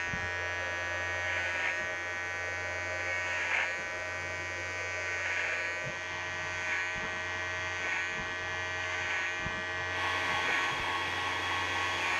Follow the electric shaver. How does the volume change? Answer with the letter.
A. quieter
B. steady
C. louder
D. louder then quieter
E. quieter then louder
B.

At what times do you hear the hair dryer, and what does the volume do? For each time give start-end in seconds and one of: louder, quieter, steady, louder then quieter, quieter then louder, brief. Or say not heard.
0.2-12.1 louder.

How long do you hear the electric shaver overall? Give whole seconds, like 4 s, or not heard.
12 s.